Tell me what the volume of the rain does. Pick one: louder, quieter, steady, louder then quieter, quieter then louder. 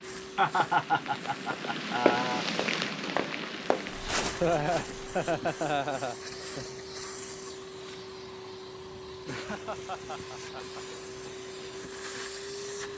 quieter.